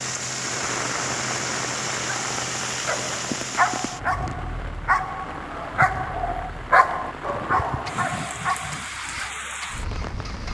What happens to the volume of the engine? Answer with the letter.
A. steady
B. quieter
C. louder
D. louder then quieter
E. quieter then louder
B.